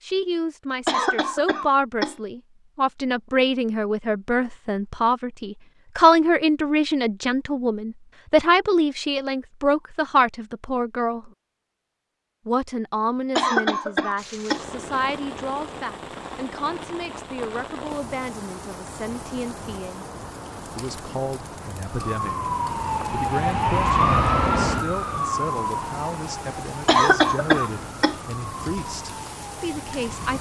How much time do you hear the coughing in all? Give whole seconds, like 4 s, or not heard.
4 s.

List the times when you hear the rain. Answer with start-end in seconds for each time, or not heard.
14.2-30.3.